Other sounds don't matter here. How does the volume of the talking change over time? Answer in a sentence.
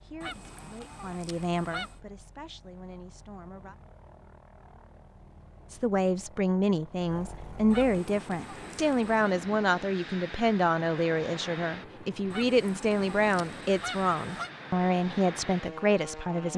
The volume of the talking goes up.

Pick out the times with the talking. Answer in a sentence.
You can hear the talking from 0.0 to 3.8 s and from 5.7 to 16.5 s.